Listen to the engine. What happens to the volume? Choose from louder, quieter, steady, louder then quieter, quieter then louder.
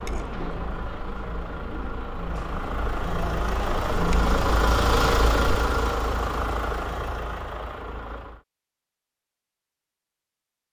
louder then quieter.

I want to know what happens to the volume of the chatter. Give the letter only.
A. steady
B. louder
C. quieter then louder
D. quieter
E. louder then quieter
B.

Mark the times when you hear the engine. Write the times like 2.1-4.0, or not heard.
0.0-8.4.